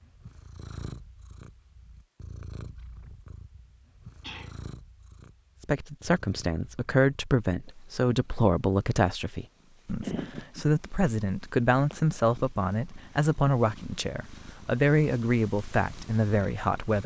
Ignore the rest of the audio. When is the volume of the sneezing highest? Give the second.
10 s.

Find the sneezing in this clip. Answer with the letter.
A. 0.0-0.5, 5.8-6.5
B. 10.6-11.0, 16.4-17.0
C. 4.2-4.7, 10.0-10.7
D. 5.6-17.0
C.